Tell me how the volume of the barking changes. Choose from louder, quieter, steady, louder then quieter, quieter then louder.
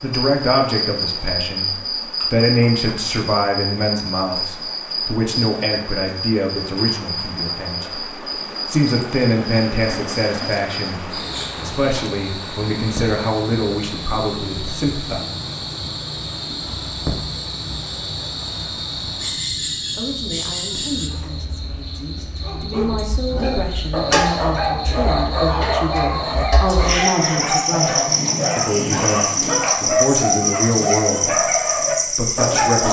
steady.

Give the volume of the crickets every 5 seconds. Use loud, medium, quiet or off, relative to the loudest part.
loud, medium, medium, medium, medium, loud, loud.